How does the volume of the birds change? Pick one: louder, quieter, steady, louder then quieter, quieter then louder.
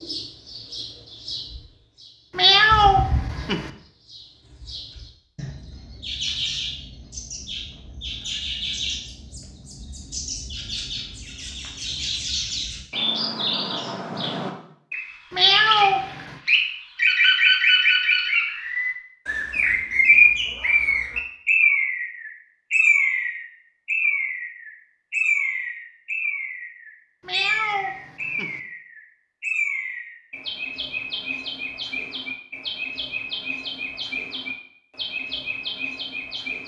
louder then quieter.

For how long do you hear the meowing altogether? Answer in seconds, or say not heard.
4 s.